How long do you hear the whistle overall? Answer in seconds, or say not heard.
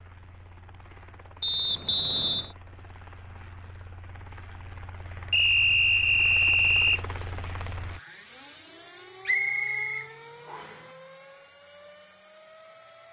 4 s.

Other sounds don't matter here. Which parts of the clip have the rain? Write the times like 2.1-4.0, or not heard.
not heard.